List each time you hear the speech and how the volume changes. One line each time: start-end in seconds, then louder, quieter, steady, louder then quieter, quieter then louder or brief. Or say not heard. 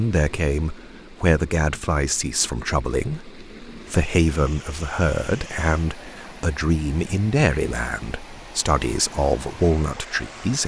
0.0-10.6 steady.